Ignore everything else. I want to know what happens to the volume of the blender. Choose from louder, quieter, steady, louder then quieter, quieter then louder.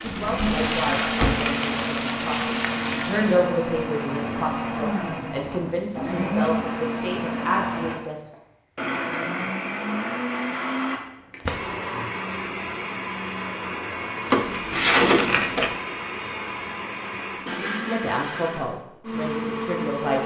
steady.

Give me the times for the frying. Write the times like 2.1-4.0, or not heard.
0.0-3.5.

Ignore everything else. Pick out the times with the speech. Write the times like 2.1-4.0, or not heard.
0.0-8.3, 17.9-20.2.